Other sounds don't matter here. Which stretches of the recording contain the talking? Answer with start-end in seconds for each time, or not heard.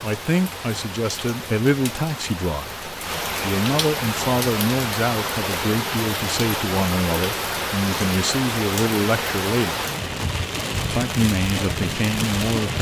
0.0-9.8, 10.9-12.7.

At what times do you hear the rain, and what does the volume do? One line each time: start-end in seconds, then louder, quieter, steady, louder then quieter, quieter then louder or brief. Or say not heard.
0.0-12.7 louder.